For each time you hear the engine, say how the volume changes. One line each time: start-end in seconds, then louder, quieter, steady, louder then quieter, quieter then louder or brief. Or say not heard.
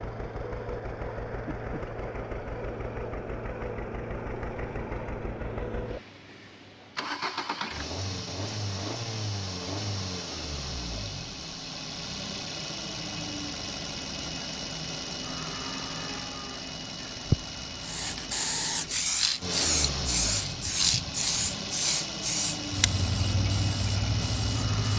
0.0-24.9 steady.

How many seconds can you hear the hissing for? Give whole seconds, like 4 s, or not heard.
7 s.